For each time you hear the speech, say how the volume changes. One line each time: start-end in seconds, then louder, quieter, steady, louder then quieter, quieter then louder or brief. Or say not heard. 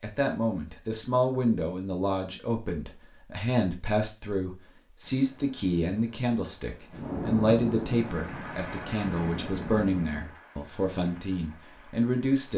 0.0-12.5 steady.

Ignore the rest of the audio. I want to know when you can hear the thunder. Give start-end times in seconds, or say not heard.
6.9-10.3.